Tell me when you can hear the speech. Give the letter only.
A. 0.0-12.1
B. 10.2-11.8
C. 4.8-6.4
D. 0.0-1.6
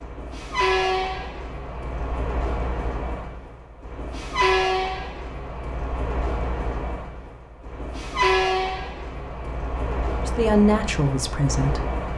B.